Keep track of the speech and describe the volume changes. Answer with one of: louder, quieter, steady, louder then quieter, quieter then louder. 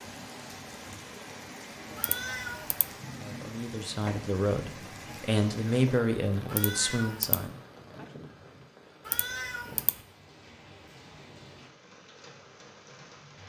louder then quieter.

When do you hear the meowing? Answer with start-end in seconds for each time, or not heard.
1.9-2.9, 6.5-7.4, 9.1-9.9.